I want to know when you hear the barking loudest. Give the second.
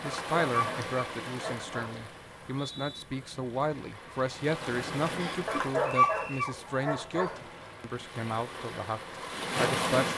6 s.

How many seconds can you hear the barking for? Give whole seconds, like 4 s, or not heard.
4 s.